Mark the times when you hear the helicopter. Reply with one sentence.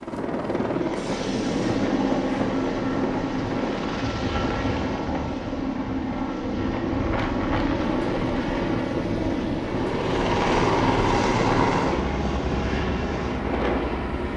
The helicopter can be heard from 0.0 to 14.3 s.